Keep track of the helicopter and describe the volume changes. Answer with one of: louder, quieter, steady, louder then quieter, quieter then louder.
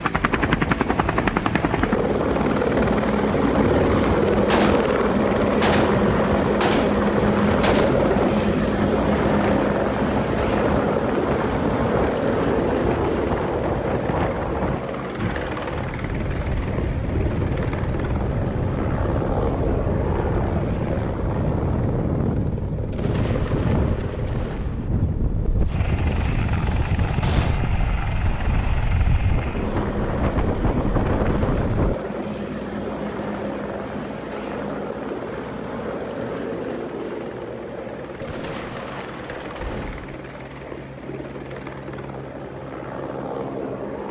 quieter.